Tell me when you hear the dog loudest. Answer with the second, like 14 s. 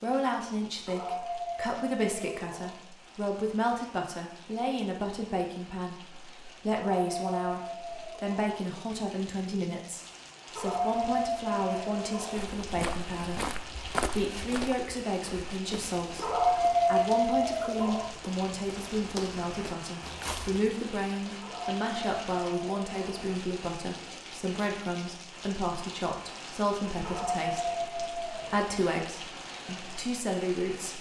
17 s.